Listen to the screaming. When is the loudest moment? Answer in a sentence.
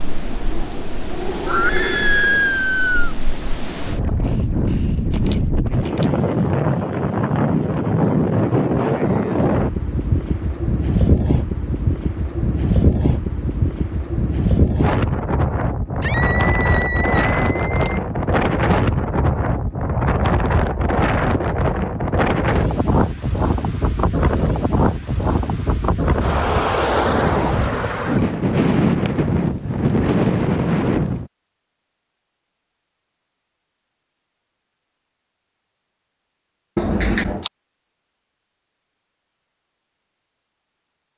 The volume of the screaming peaks at 2 seconds.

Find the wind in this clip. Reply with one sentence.
The wind can be heard from 0.0 to 31.3 s.